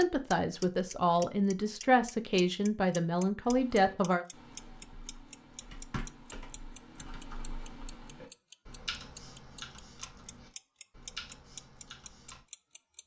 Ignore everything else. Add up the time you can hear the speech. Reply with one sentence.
The speech can be heard for 4 seconds in total.